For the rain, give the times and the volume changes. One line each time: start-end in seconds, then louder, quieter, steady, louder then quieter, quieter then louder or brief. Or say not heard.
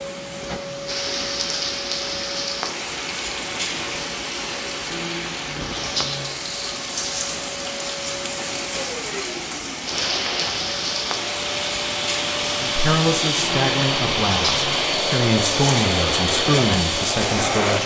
0.0-17.8 steady.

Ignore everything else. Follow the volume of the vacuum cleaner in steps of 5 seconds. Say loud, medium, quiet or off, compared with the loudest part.
quiet, quiet, loud, loud.